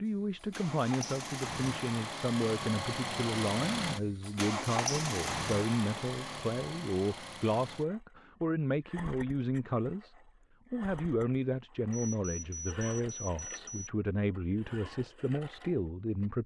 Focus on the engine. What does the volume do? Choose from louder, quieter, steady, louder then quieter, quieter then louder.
quieter.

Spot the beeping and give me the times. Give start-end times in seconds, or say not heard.
11.9-13.9.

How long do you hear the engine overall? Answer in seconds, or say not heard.
16 s.